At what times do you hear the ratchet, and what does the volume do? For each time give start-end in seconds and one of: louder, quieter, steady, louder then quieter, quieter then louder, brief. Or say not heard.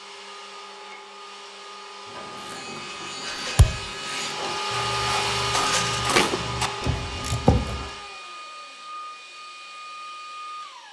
2.0-7.9 louder.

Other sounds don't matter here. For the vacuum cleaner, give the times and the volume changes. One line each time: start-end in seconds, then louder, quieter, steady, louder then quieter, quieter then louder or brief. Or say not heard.
0.0-10.8 louder then quieter.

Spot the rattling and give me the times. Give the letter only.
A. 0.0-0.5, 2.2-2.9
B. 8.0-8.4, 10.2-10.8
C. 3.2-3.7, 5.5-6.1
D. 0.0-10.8
C.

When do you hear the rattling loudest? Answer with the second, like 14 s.
6 s.